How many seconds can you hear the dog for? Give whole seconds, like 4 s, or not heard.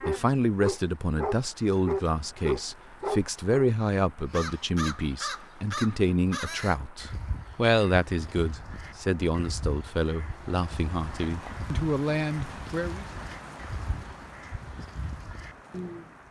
4 s.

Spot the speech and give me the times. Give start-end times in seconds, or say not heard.
0.0-13.1.